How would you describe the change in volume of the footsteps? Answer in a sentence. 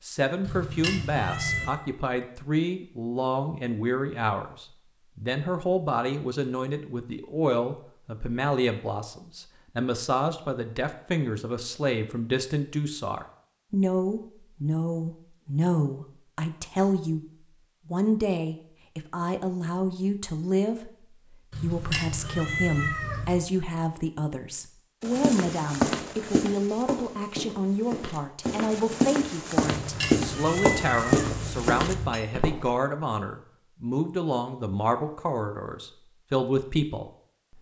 The volume of the footsteps goes down, then up.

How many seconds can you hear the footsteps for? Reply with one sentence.
You can hear the footsteps for 8 seconds altogether.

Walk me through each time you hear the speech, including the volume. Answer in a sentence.
You can hear the speech from 0.0 to 17.2 s, at a steady volume; and from 17.9 to 37.5 s, at a steady volume.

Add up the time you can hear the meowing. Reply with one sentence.
You can hear the meowing for 6 seconds altogether.